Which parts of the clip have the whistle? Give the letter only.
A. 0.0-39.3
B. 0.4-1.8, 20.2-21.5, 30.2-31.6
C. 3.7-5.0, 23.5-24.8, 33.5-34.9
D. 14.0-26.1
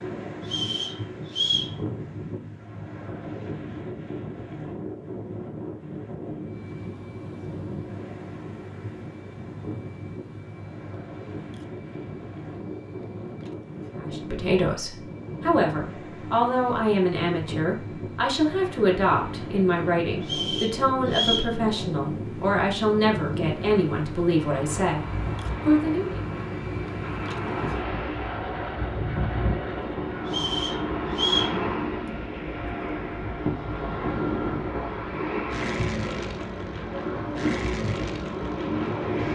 B.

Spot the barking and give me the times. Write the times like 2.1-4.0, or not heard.
not heard.